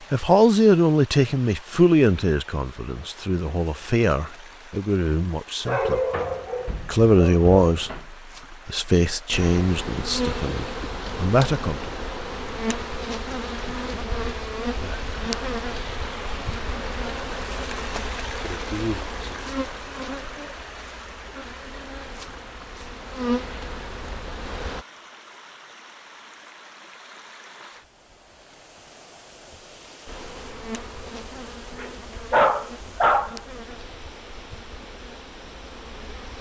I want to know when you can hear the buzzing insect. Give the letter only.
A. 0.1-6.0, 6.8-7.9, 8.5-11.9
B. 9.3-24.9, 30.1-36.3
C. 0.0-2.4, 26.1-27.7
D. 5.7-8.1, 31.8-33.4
B.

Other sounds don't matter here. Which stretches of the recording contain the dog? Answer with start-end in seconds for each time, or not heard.
5.7-8.1, 31.8-33.4.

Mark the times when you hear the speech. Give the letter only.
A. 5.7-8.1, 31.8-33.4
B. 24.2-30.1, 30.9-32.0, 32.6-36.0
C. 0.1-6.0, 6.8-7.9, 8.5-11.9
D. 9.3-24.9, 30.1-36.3
C.